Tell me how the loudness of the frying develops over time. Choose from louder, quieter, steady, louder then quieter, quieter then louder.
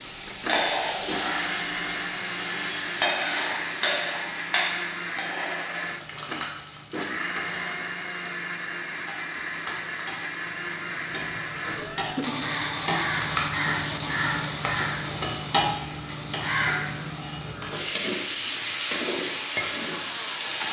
quieter then louder.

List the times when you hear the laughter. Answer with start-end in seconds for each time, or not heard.
11.6-12.4.